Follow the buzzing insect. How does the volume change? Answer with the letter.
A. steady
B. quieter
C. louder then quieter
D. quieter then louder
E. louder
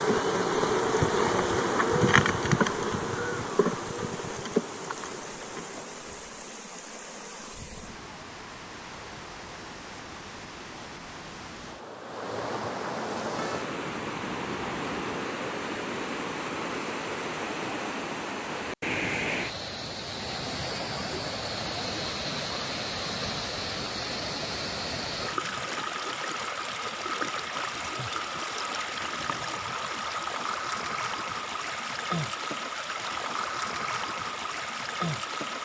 B.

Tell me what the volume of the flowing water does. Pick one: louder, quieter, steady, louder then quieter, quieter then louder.
louder.